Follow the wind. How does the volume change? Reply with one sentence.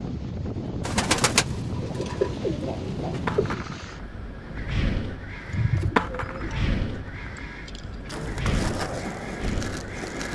The loudness of the wind stays about the same.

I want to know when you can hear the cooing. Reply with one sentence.
You can hear the cooing from 0.8 to 3.6 s and from 5.5 to 8.2 s.